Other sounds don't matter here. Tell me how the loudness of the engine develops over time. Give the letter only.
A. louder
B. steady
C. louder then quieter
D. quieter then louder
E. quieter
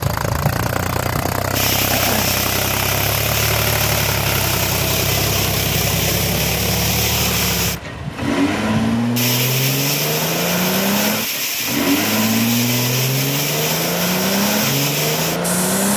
B.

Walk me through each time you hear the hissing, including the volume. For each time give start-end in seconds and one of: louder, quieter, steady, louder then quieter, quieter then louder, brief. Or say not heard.
0.2-15.9 steady.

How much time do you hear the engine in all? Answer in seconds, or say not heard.
16 s.